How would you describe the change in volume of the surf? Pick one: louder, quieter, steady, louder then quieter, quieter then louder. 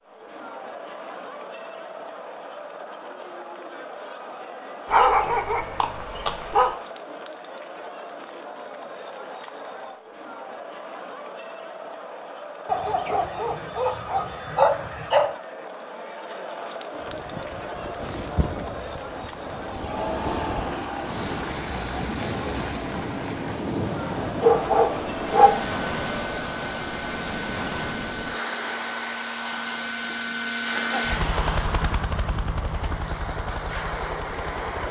steady.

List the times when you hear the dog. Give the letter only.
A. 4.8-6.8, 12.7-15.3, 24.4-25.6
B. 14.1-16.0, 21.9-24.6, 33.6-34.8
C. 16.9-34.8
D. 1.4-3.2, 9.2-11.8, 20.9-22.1
A.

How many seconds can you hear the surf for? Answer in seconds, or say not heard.
18 s.